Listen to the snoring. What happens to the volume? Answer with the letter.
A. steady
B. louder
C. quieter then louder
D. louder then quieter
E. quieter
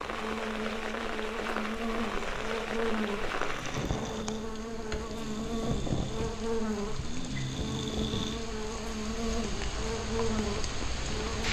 B.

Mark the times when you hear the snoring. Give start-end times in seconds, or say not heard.
2.1-8.4.